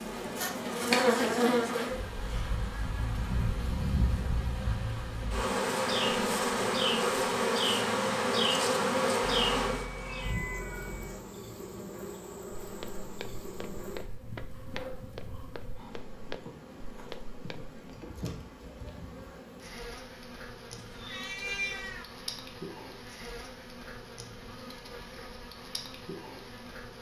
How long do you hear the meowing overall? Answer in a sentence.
The meowing can be heard for 3 seconds in total.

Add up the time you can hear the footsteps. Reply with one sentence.
You can hear the footsteps for 5 seconds altogether.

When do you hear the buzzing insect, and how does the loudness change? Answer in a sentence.
You can hear the buzzing insect from 0.0 to 26.9 s, getting quieter.